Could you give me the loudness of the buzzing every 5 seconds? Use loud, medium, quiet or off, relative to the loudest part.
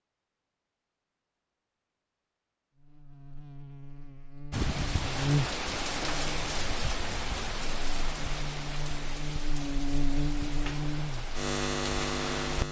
quiet, loud, loud.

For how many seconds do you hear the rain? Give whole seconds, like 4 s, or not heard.
8 s.